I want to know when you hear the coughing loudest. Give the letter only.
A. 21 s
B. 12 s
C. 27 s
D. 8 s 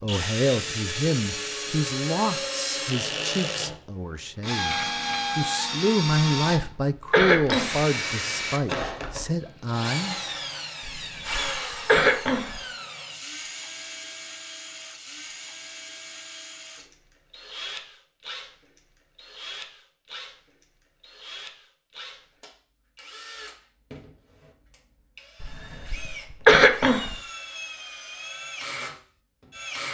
C.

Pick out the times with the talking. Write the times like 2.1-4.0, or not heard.
0.0-10.6.